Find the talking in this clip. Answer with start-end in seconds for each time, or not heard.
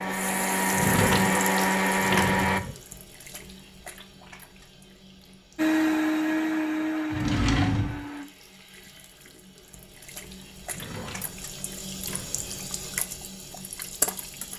not heard.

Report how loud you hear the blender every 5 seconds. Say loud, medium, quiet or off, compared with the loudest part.
loud, loud, off.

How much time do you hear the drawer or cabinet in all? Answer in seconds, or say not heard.
5 s.